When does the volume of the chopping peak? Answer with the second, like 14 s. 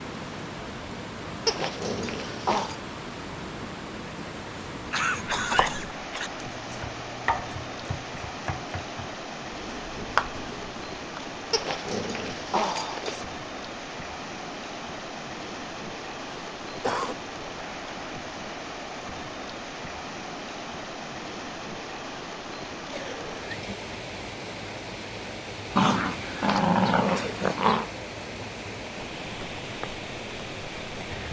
10 s.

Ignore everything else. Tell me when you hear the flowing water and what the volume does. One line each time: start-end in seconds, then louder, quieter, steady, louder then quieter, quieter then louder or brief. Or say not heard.
0.0-31.2 steady.